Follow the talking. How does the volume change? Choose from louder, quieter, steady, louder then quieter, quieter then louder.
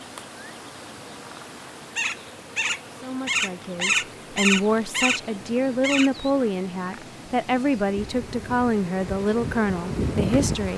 steady.